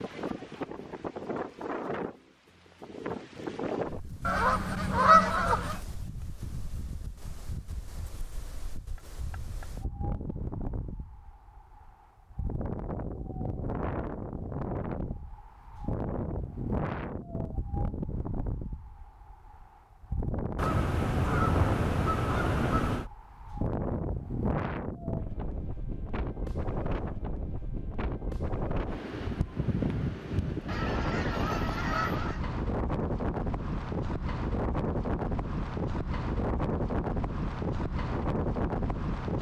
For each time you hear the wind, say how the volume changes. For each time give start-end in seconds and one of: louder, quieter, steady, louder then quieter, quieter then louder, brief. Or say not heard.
0.0-39.3 louder.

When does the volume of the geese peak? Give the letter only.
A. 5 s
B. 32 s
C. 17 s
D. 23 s
A.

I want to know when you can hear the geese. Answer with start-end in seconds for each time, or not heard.
4.2-5.8, 20.6-23.1, 30.6-32.5.